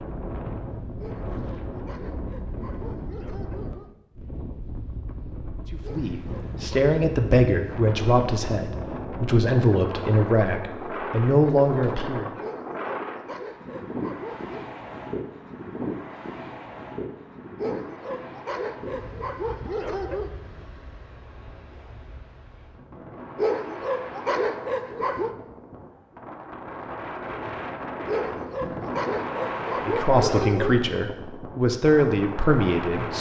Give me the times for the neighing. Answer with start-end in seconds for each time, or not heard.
not heard.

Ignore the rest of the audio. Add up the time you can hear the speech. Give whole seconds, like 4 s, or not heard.
10 s.